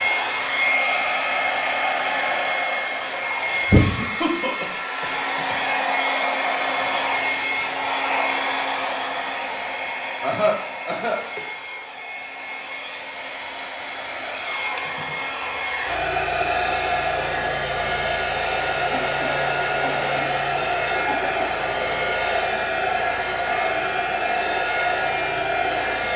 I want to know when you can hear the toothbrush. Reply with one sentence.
You can't hear the toothbrush here.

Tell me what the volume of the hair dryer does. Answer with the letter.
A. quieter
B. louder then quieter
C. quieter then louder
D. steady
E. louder
C.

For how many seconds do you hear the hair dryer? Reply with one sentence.
You can hear the hair dryer for 26 seconds altogether.